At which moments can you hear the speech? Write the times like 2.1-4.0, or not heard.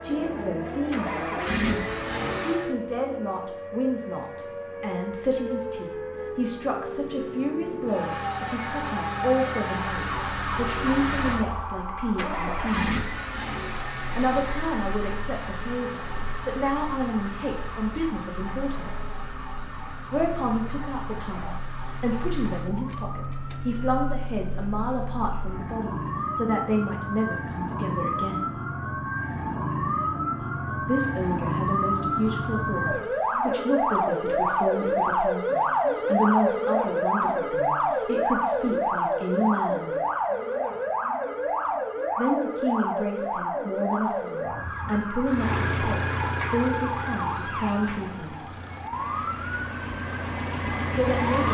0.0-13.0, 14.2-19.1, 20.1-28.5, 30.9-39.9, 42.1-48.5, 51.0-51.4.